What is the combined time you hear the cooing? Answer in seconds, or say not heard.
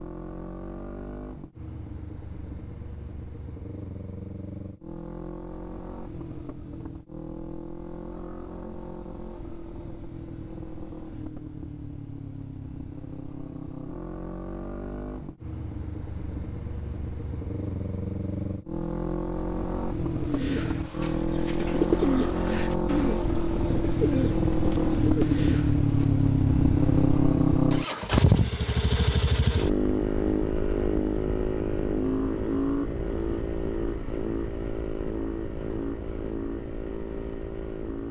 6 s.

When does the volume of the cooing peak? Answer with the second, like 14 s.
22 s.